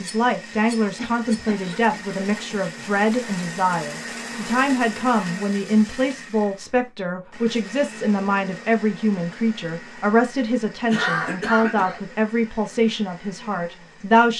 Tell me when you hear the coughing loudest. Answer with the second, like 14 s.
11 s.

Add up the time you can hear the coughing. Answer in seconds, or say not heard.
3 s.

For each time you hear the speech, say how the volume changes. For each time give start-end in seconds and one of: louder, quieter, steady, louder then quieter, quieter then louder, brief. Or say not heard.
0.0-14.3 steady.